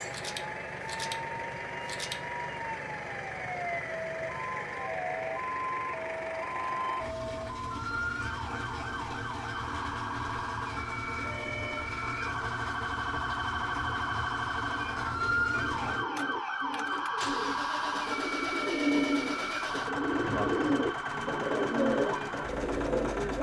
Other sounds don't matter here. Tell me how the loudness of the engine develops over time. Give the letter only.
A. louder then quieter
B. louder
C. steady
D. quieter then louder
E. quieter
C.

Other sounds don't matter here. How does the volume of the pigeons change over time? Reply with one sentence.
The volume of the pigeons goes up.